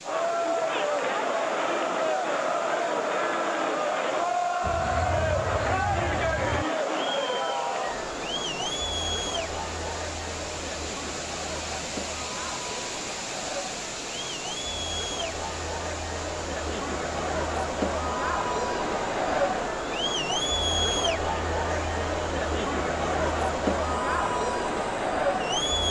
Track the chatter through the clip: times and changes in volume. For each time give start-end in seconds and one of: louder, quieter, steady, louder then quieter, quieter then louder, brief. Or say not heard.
0.0-25.8 quieter then louder.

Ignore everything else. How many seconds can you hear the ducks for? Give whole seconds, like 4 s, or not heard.
2 s.